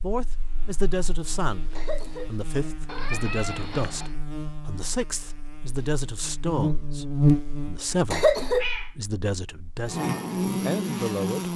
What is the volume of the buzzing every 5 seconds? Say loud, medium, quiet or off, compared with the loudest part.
quiet, loud, loud.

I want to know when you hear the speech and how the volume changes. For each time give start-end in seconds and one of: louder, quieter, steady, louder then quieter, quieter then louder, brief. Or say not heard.
0.0-11.5 steady.